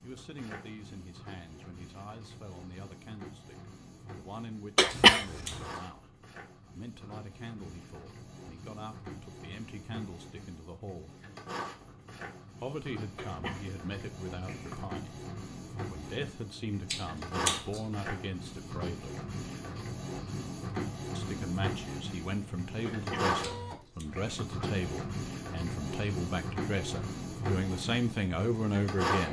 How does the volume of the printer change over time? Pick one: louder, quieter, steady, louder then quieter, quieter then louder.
louder.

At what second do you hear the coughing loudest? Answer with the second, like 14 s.
5 s.